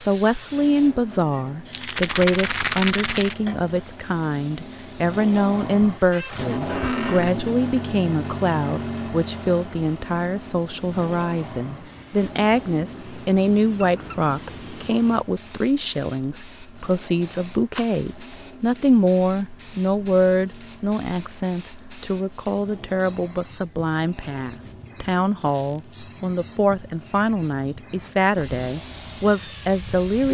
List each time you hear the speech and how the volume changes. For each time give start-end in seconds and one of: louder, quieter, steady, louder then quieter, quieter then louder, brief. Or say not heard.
0.1-30.2 steady.